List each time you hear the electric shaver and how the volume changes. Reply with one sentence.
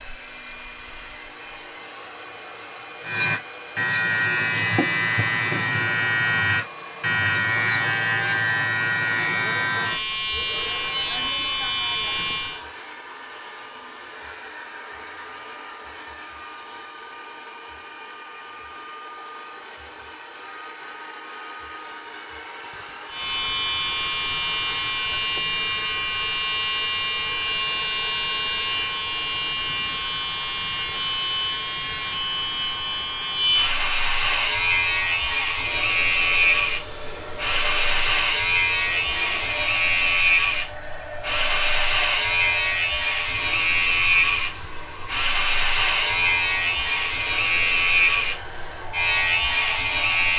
The electric shaver can be heard from 3.0 to 12.6 s, at a steady volume; and from 23.1 to 50.3 s, at a steady volume.